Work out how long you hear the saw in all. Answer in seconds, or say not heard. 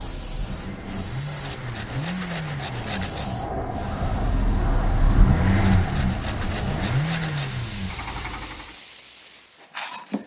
4 s.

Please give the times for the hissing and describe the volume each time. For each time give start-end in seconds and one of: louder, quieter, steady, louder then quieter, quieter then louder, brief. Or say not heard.
0.0-10.2 louder.